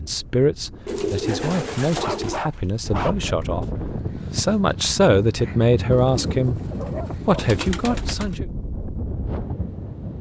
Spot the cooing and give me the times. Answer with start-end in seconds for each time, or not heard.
0.8-2.4, 5.9-8.3.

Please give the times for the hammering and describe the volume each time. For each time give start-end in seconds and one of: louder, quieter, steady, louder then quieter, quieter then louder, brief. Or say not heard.
not heard.